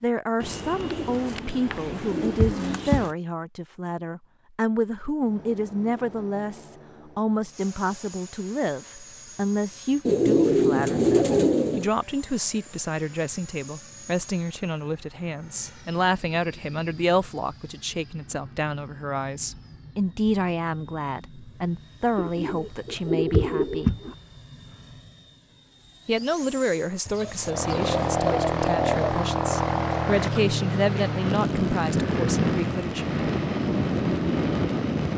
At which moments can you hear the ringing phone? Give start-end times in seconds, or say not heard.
not heard.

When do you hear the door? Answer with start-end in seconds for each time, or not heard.
2.4-3.0, 23.3-24.0.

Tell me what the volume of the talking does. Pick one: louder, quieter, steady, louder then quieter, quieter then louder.
steady.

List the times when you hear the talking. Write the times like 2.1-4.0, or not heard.
0.0-23.9, 26.1-33.1.